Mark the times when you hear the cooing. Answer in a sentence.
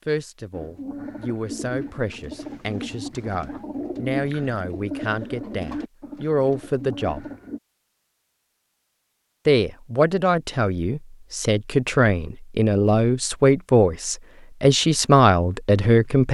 The cooing can be heard from 0.5 to 7.6 s.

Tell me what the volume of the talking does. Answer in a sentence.
The loudness of the talking goes up.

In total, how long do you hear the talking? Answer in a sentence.
You can hear the talking for 14 seconds altogether.